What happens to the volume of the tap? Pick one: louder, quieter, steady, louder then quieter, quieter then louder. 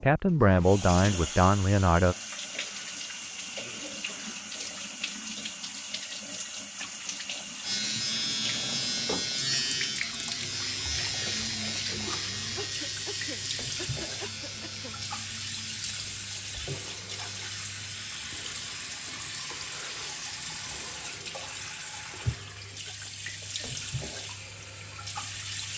steady.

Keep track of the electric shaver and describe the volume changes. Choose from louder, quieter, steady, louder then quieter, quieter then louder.
quieter.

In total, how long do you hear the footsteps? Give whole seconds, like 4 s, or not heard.
not heard.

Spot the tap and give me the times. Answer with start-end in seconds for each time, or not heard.
0.0-25.7.